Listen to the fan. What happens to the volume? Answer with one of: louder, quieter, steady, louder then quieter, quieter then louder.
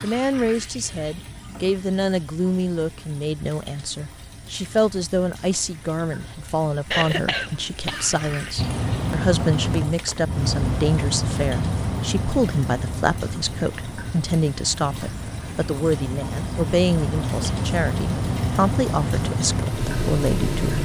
quieter then louder.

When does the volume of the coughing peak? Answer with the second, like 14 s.
7 s.